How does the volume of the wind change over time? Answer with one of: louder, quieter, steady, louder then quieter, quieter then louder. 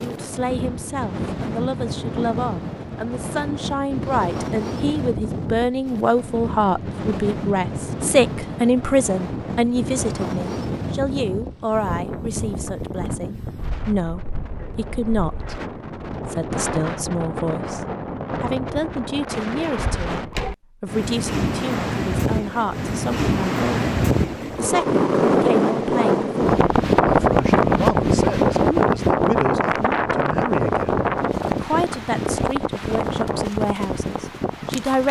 louder.